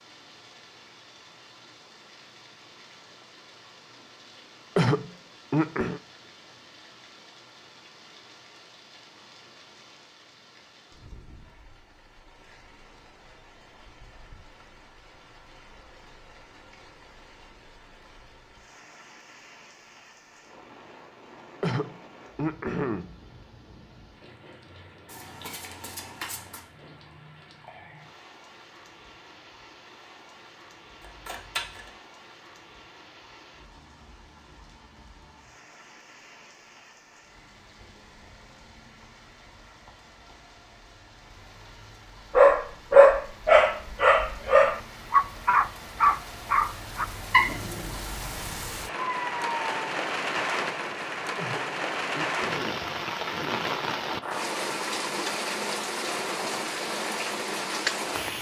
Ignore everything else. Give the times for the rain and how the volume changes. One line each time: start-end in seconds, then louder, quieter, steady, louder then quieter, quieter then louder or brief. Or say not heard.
0.0-58.3 louder.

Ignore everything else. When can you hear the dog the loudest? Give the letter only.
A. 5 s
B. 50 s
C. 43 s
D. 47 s
C.